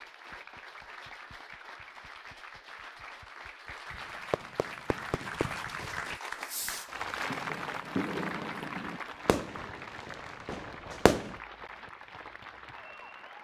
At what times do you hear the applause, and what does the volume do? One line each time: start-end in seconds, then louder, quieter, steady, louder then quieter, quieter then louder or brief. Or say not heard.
0.0-13.3 louder then quieter.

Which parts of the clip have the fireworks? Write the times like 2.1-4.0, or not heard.
3.9-11.3.